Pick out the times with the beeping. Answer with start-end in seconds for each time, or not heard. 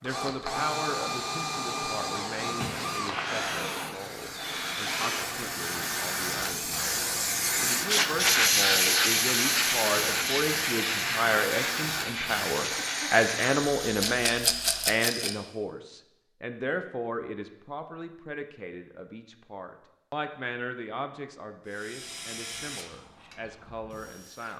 not heard.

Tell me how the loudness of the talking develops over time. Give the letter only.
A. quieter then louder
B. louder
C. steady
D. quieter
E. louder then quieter
E.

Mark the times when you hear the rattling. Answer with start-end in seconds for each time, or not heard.
14.0-15.3.